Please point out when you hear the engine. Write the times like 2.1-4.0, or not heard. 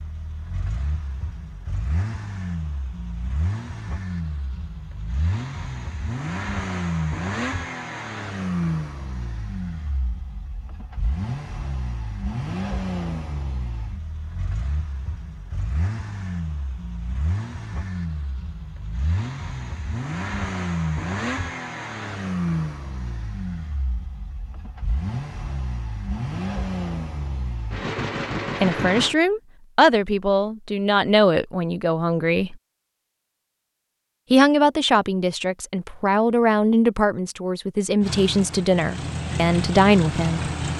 0.0-29.1, 38.0-40.7.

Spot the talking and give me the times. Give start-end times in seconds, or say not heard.
28.6-32.5, 34.3-40.7.